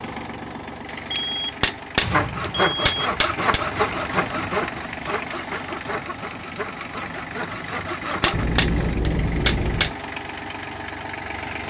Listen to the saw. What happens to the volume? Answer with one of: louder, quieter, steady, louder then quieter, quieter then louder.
quieter.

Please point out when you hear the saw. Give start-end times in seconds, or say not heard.
2.0-8.4.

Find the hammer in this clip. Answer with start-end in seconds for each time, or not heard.
1.6-3.6, 8.2-9.9.